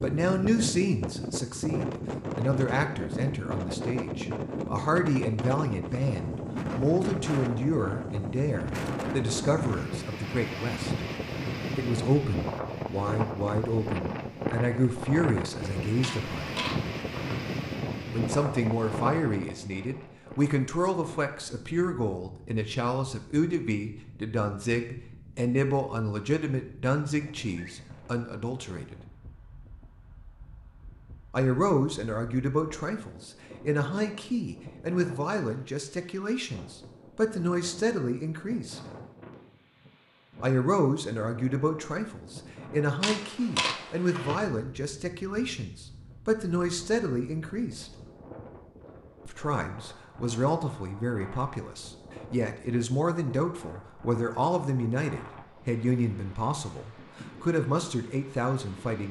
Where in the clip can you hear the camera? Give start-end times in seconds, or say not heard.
16.0-17.4, 43.0-44.4.